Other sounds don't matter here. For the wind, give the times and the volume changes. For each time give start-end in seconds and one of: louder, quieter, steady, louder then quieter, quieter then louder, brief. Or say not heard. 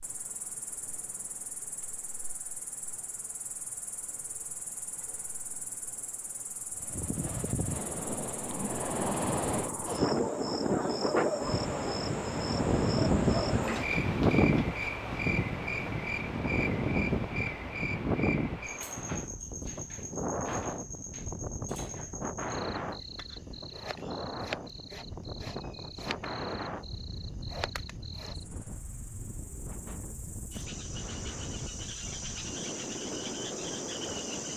6.8-34.5 quieter.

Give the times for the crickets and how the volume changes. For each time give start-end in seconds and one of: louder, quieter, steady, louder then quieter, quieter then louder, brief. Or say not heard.
0.0-34.5 louder then quieter.